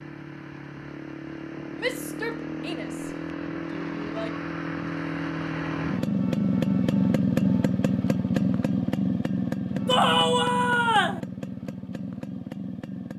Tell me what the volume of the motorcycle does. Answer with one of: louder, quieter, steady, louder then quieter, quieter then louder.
louder then quieter.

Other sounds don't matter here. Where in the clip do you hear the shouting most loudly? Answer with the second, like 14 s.
10 s.